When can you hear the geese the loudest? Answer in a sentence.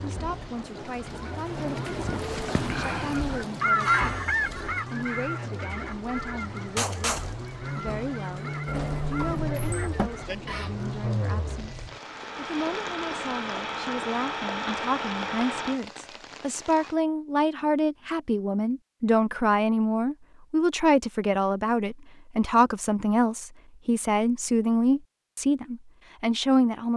The loudest moment of the geese is at 4 seconds.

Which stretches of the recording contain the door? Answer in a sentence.
The door can be heard from 8.7 to 10.1 s.